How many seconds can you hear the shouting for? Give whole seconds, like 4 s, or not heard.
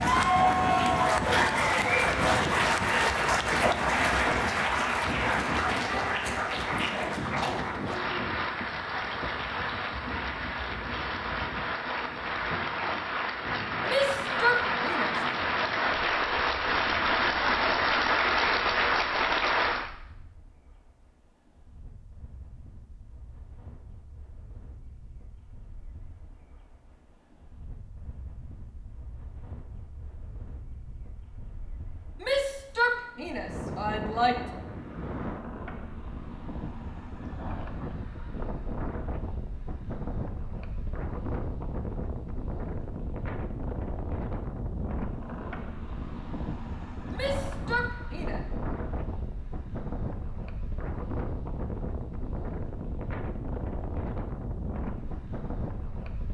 5 s.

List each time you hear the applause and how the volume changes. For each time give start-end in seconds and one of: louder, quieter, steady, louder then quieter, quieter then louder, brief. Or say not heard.
0.0-19.9 quieter then louder.